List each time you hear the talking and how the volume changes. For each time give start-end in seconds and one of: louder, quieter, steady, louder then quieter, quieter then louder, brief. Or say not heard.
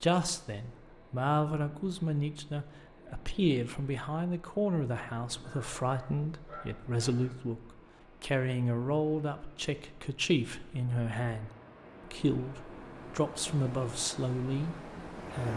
0.0-15.5 steady.